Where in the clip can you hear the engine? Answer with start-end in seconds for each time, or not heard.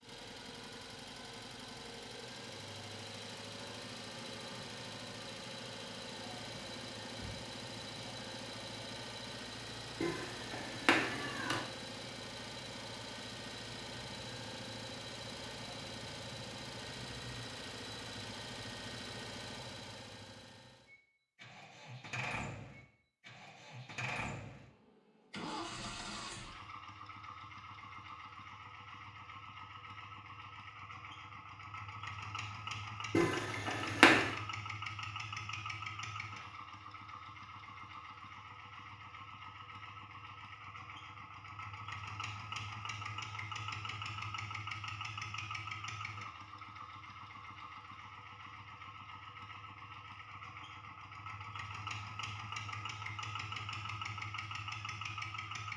0.0-55.7.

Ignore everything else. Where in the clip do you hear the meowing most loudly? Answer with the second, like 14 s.
34 s.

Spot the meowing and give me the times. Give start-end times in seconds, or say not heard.
10.0-11.6, 33.1-34.3.